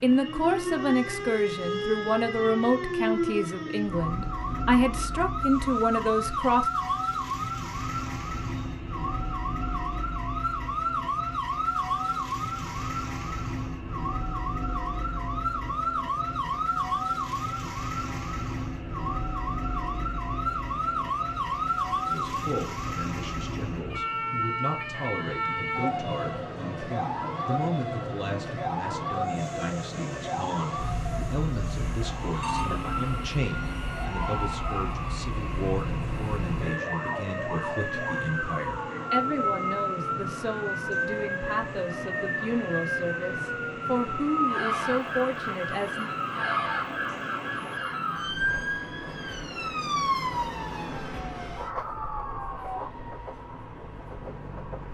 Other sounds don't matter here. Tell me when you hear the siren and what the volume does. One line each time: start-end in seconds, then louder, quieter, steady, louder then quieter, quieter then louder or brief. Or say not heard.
0.0-52.9 steady.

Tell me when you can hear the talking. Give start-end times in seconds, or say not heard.
0.0-6.7, 22.1-46.1.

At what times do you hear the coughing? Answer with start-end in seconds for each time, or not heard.
not heard.